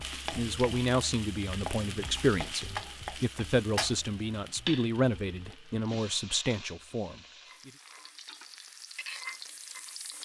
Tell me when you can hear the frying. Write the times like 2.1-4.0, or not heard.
0.0-10.1.